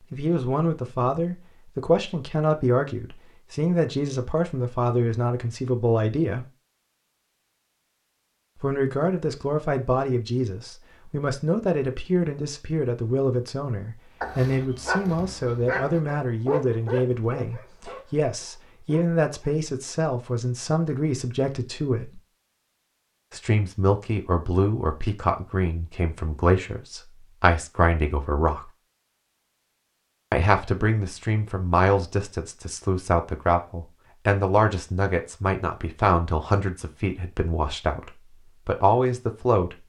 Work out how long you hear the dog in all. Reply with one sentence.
You can hear the dog for 5 seconds altogether.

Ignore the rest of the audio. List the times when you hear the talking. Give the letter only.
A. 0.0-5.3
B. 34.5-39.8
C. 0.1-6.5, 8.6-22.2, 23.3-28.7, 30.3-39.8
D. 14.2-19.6
C.